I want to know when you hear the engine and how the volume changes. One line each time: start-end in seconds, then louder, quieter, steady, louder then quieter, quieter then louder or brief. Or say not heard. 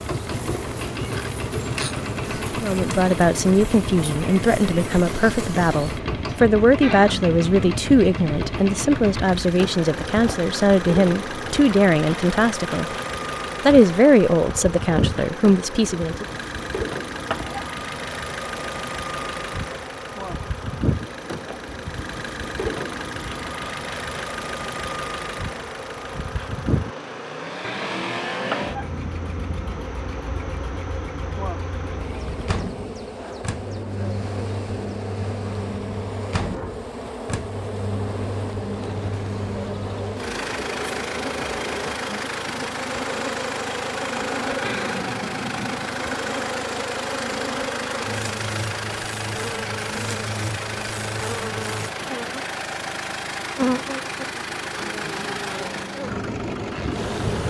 0.0-57.4 steady.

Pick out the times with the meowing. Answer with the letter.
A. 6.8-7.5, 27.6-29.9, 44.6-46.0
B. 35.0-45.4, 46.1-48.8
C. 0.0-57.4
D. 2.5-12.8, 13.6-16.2
A.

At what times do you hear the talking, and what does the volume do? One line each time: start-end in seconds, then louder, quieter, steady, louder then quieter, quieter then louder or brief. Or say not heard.
2.5-12.8 steady
13.6-16.2 brief.